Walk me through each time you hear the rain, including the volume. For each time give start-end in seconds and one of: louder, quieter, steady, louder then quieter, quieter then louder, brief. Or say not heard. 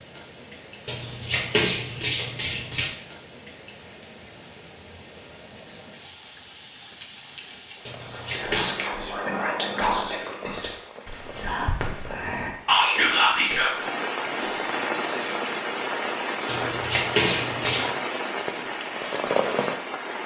0.0-20.2 louder.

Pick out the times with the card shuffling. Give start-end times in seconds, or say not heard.
0.8-2.9, 7.8-8.8, 16.4-17.9.